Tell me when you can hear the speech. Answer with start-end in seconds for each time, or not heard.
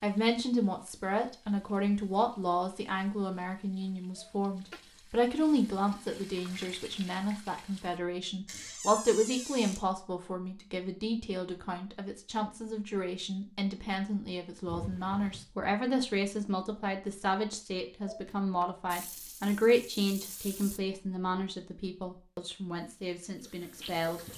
0.0-24.3.